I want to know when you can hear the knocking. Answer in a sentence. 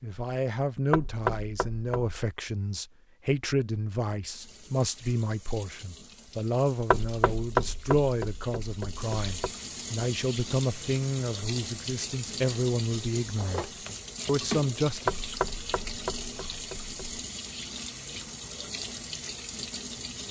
You can hear the knocking from 0.9 to 2.1 s, from 6.9 to 9.5 s and from 15.1 to 17.2 s.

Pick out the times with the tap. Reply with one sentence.
You can hear the tap from 4.2 to 20.2 s.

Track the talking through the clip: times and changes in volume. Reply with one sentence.
The talking can be heard from 0.0 to 15.1 s, at a steady volume.